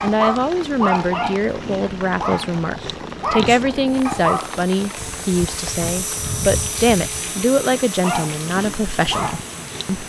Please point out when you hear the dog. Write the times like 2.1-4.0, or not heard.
0.0-4.7, 8.0-10.0.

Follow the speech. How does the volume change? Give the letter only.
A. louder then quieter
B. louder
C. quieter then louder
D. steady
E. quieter
D.